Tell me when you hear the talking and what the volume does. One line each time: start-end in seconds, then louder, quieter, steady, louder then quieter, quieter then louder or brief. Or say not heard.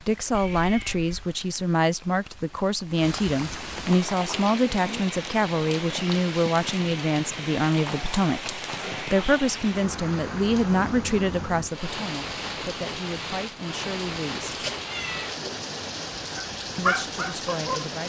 0.0-14.6 quieter
16.8-18.0 brief.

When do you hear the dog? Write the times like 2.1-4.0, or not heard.
16.4-17.9.